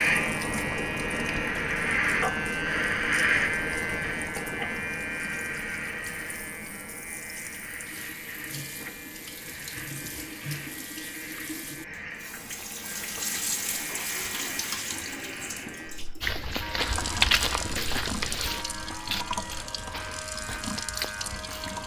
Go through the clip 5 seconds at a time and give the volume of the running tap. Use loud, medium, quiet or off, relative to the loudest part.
quiet, medium, loud, loud, loud.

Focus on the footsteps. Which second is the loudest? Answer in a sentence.
The loudest moment of the footsteps is at 17 seconds.